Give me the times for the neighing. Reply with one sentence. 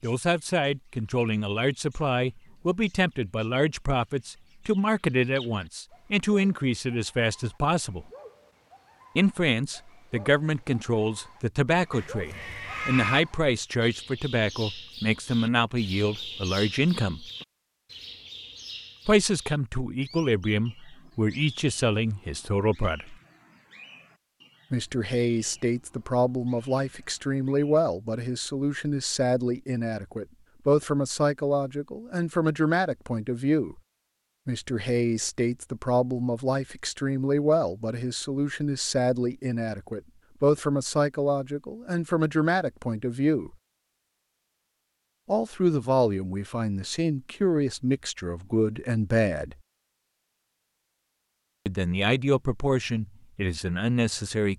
The neighing can be heard from 11.9 to 13.2 s.